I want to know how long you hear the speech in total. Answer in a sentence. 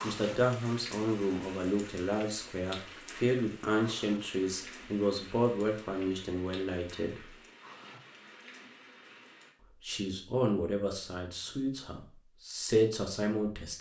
The speech can be heard for 11 seconds in total.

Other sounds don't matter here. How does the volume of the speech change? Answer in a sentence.
The volume of the speech stays about the same.